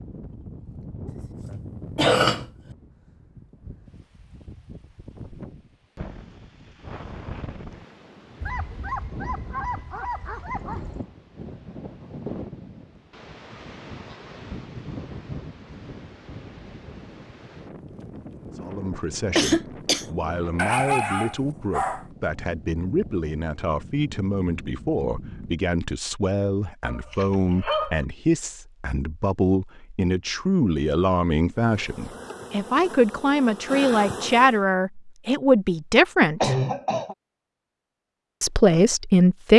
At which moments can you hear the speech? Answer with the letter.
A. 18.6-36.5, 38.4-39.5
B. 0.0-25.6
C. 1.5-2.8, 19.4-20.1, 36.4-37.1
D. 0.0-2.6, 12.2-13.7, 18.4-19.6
A.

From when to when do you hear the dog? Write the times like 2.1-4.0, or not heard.
8.4-11.1, 20.6-22.1, 26.8-28.1.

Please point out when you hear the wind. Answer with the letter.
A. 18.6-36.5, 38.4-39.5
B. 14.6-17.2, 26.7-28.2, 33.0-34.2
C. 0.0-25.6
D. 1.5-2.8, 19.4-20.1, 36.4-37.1
C.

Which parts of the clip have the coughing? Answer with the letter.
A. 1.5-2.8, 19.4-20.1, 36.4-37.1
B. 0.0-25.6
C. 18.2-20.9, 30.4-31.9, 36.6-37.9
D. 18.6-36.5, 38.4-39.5
A.